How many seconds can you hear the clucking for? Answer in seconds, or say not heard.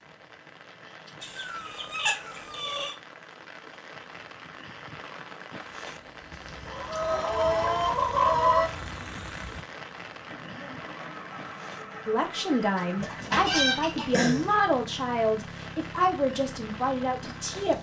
6 s.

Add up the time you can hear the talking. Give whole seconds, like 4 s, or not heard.
6 s.